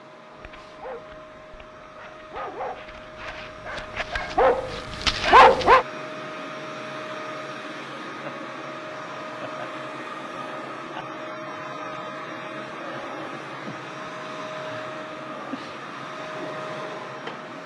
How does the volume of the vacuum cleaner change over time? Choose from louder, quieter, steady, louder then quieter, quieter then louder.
louder.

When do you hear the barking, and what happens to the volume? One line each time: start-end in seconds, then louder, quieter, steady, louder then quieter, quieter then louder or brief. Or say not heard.
0.4-5.8 louder.